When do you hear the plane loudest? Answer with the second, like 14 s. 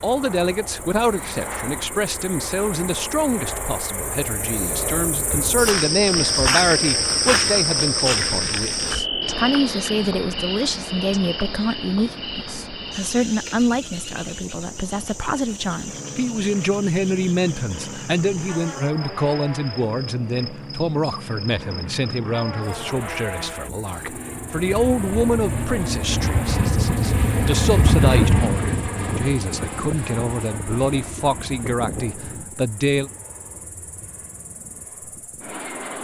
28 s.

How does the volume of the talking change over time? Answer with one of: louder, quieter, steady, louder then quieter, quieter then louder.
steady.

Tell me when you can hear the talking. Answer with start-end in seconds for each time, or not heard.
0.0-33.1.